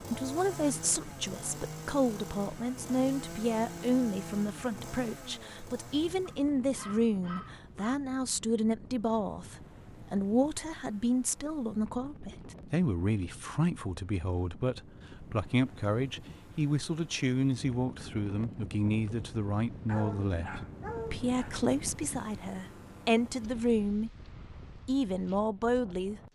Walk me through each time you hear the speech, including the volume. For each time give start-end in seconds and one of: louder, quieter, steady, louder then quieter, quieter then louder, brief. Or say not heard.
0.0-24.1 steady
24.9-26.2 brief.